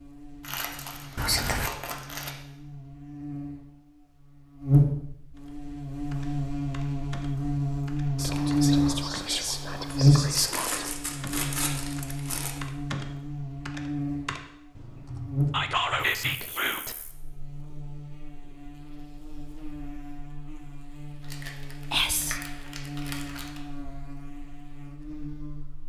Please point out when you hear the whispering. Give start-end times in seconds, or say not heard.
1.1-1.7, 8.2-10.9, 15.5-16.9, 21.9-22.4.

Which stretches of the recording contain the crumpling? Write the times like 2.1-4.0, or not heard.
0.4-2.3, 10.3-12.6, 21.2-23.6.